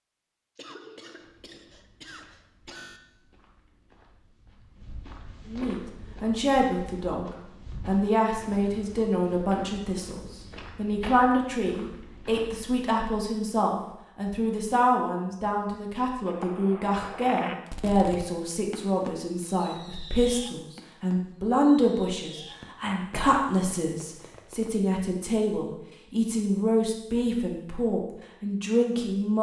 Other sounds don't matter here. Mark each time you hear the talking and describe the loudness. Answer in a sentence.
The talking can be heard briefly from 5.5 to 7.2 s; and from 7.8 to 29.3 s, at a steady volume.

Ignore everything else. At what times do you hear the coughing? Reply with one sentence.
The coughing can be heard from 0.6 to 3.0 s.